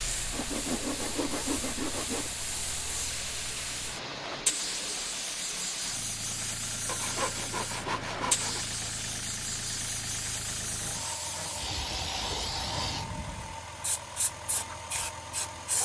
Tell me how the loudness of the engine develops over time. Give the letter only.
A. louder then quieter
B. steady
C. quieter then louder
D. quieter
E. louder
B.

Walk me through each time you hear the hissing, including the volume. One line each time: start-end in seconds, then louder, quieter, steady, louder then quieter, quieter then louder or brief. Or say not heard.
0.0-15.8 steady.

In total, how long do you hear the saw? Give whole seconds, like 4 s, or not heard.
6 s.